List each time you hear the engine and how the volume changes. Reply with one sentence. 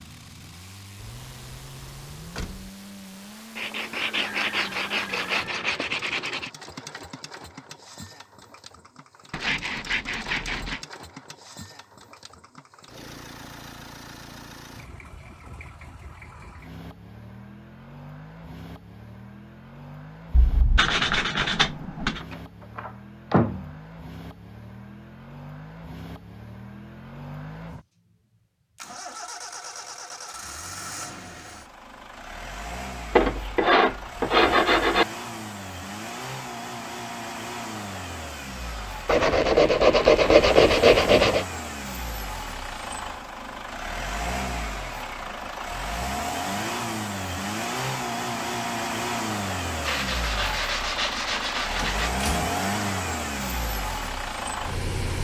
You can hear the engine from 0.0 to 55.1 s, getting louder.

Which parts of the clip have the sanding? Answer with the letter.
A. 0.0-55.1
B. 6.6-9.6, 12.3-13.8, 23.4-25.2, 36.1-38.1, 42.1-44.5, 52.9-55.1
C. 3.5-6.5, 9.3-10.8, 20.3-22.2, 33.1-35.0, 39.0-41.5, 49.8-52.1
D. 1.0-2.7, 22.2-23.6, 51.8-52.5
C.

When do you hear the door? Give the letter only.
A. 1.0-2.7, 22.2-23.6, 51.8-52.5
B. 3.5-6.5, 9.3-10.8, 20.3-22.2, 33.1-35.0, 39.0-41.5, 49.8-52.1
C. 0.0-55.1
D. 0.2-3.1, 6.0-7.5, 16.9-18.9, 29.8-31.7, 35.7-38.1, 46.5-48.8
A.